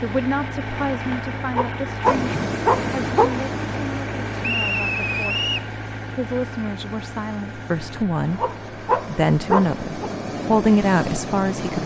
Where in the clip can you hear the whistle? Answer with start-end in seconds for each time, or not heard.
4.4-5.7.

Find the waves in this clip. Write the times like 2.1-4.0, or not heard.
2.0-11.8.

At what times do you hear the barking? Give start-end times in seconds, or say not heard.
1.5-3.4, 8.3-10.1.